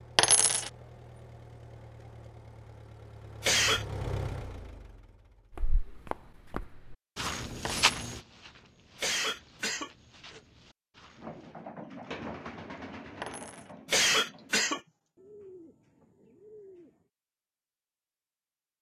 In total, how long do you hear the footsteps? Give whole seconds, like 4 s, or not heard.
6 s.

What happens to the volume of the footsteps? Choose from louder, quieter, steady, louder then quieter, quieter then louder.
louder then quieter.